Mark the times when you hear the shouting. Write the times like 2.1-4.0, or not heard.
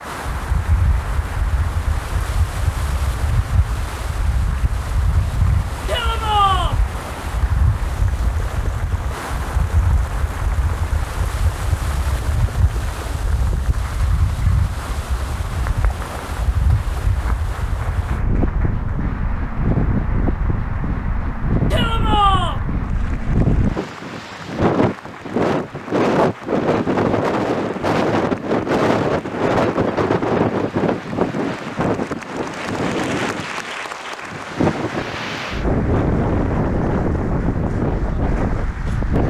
5.8-6.8, 21.7-22.6.